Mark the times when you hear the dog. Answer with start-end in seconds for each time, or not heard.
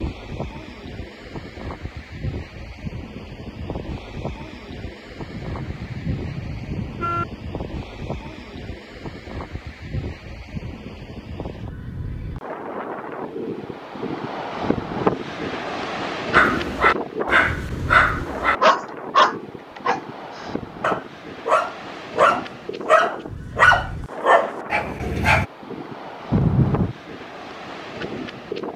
16.3-25.4.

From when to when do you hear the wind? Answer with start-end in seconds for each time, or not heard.
0.0-28.7.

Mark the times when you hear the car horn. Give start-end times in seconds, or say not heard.
5.3-7.2, 26.3-26.9.